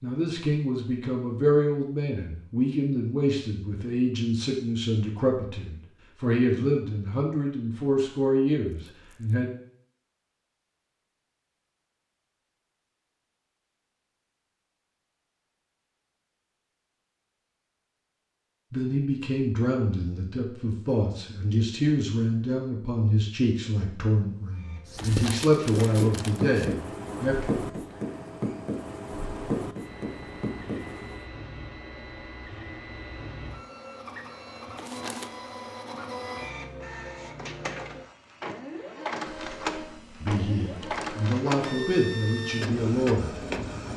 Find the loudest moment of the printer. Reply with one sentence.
The volume of the printer peaks at 41 seconds.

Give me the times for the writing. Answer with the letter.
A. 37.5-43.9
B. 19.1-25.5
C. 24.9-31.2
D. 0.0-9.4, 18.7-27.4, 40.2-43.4
C.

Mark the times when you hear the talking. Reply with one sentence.
The talking can be heard from 0.0 to 9.4 s, from 18.7 to 27.4 s and from 40.2 to 43.4 s.